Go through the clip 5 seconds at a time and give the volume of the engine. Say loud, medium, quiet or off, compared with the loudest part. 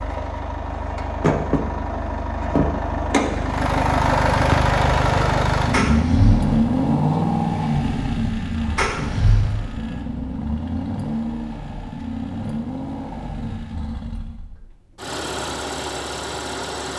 loud, loud, medium, medium.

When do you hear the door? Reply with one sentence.
You can hear the door from 5.7 to 6.5 s and from 8.8 to 9.6 s.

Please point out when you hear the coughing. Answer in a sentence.
The coughing can't be heard in this clip.